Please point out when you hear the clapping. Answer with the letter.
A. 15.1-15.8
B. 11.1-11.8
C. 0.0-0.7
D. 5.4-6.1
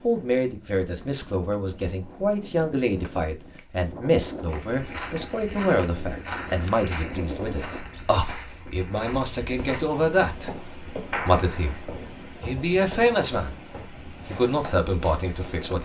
B.